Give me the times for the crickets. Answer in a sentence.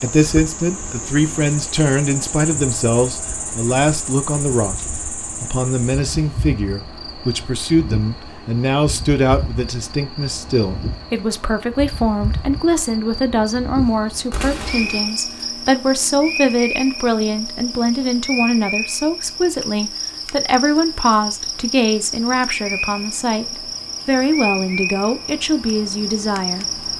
You can hear the crickets from 0.0 to 26.9 s.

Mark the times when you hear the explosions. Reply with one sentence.
You can hear the explosions from 14.3 to 15.1 s.